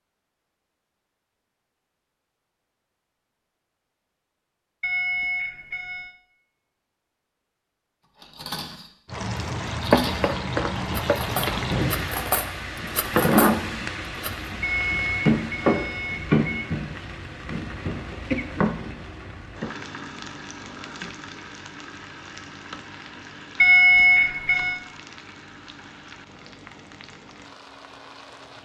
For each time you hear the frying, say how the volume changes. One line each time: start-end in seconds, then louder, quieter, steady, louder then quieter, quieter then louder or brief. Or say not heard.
9.1-28.5 quieter.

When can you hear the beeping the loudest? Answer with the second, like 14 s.
24 s.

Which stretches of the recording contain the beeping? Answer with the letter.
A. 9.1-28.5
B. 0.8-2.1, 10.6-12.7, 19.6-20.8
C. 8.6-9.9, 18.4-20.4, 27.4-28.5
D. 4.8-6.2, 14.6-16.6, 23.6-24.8
D.